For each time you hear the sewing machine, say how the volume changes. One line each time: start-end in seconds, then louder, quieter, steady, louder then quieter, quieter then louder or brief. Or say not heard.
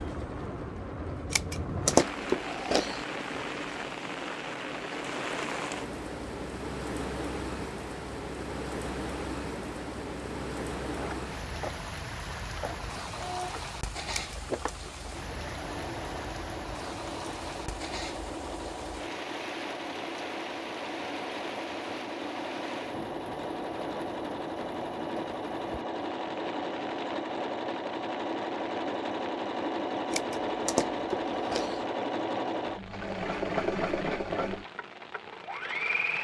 0.0-36.1 louder.